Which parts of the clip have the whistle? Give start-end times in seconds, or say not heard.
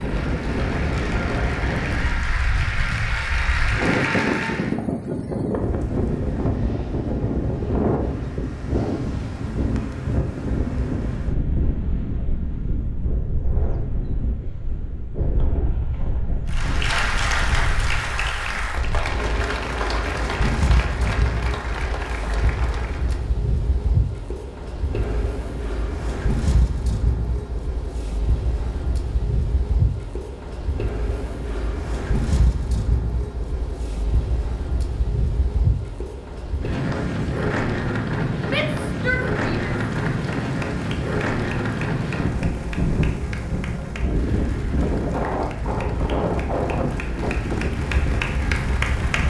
not heard.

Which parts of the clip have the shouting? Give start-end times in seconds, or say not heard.
38.5-39.8.